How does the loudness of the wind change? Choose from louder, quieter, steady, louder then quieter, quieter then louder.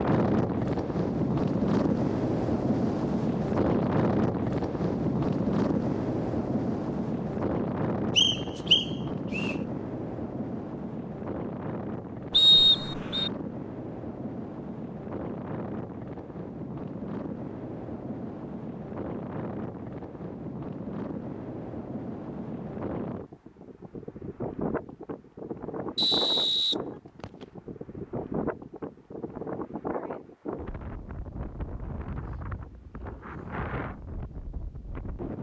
quieter.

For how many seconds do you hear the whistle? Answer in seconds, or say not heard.
4 s.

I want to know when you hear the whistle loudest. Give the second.
13 s.